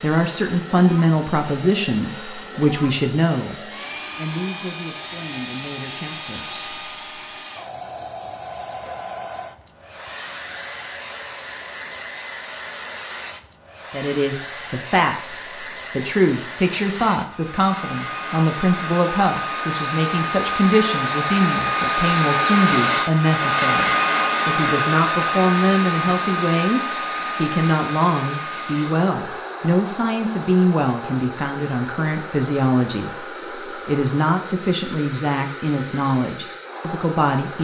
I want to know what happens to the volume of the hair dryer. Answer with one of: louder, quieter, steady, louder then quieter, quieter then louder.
louder then quieter.